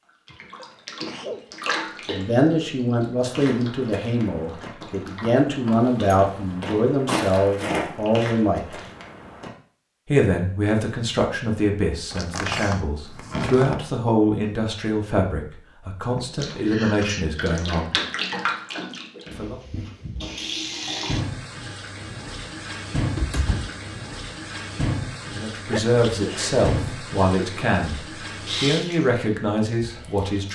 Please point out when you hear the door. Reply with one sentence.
You can hear the door from 5.8 to 6.8 s, from 12.1 to 13.8 s and from 23.0 to 23.8 s.